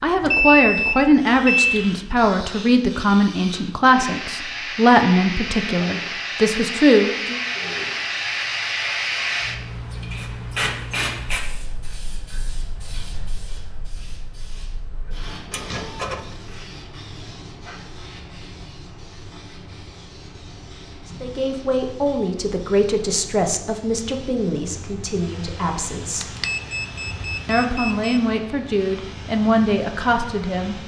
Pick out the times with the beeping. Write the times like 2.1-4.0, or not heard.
0.2-1.9, 15.5-16.2, 26.2-28.2.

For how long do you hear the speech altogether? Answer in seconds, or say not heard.
16 s.